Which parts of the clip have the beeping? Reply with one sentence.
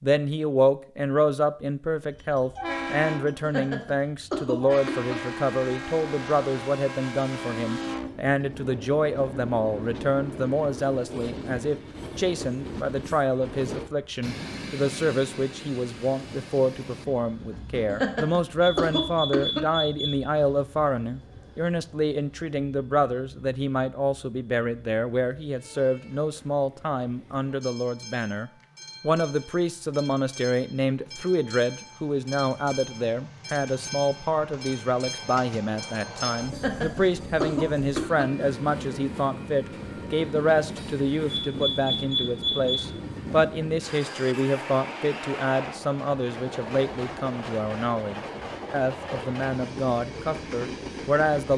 You can hear the beeping from 18.6 to 20.2 s and from 41.4 to 42.9 s.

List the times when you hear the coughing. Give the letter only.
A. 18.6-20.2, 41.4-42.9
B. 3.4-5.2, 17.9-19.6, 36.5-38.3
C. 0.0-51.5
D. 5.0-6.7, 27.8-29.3
B.